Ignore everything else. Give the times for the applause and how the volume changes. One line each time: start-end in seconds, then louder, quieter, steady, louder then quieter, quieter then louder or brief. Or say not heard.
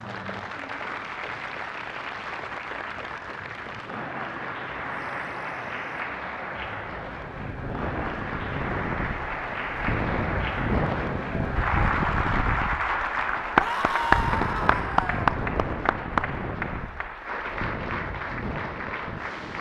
0.0-19.5 louder then quieter.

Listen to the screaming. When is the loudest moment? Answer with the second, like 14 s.
14 s.